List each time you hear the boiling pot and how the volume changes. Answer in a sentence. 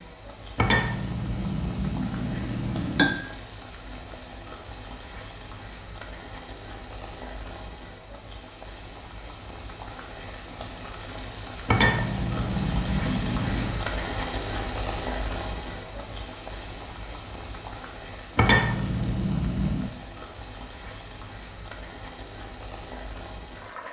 You can hear the boiling pot from 0.0 to 23.8 s, getting louder then quieter.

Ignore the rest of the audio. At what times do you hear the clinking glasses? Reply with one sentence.
You can hear the clinking glasses from 0.6 to 3.2 s, from 11.7 to 13.8 s and from 18.4 to 19.9 s.